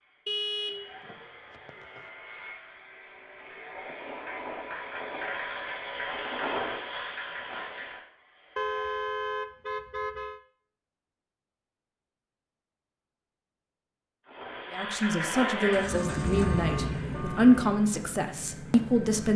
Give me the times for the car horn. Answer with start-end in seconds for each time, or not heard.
0.2-2.0, 8.6-10.4, 15.9-17.7.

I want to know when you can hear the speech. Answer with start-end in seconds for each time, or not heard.
14.7-19.3.